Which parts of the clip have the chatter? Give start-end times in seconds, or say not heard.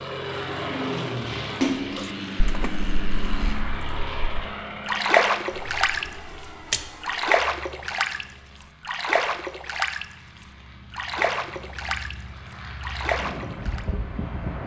not heard.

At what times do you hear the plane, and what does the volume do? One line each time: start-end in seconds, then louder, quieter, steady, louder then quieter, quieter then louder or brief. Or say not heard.
0.0-14.6 quieter then louder.